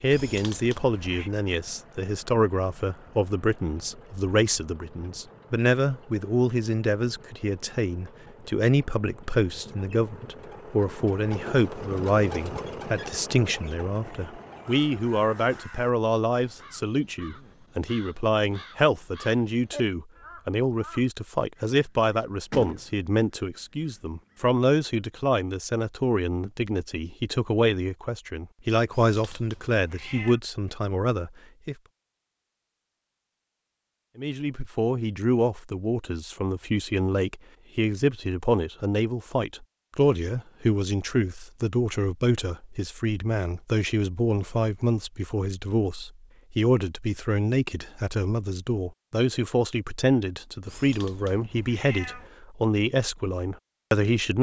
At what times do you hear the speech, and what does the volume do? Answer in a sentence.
You can hear the speech from 0.0 to 31.8 s, at a steady volume; and from 34.1 to 54.3 s, at a steady volume.